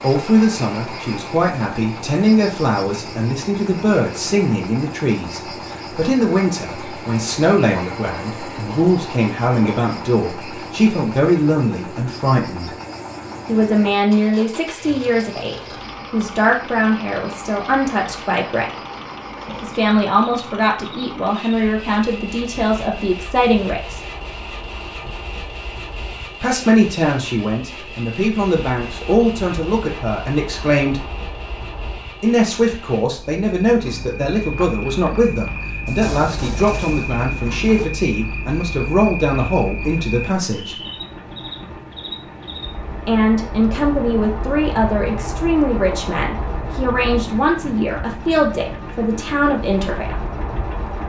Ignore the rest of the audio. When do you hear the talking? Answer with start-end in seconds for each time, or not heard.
0.0-12.7, 13.4-18.8, 19.6-24.0, 26.4-31.1, 32.2-40.8, 43.0-50.2.